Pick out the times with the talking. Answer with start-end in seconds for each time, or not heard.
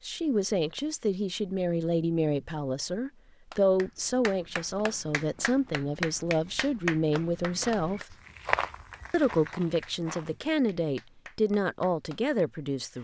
0.1-8.2, 9.1-12.9.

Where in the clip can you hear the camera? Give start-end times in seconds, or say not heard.
not heard.